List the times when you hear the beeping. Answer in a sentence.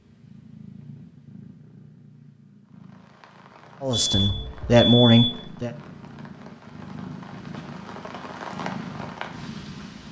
The beeping can be heard from 3.9 to 5.4 s.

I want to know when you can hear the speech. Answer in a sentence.
You can hear the speech from 3.8 to 5.7 s.